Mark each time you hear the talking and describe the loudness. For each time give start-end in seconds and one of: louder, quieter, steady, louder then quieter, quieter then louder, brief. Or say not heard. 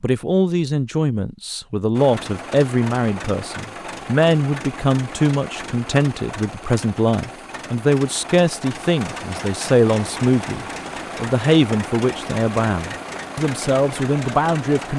0.0-14.9 steady.